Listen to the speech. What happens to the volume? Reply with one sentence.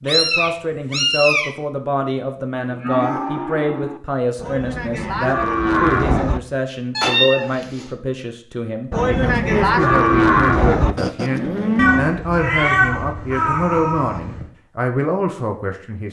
The loudness of the speech stays about the same.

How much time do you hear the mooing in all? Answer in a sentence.
The mooing can be heard for 7 seconds in total.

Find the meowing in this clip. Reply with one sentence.
The meowing can be heard from 0.1 to 1.5 s, from 7.0 to 7.8 s and from 11.8 to 14.4 s.